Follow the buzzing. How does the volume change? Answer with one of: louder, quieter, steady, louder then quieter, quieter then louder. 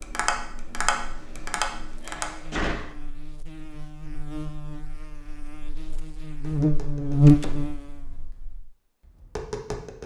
louder.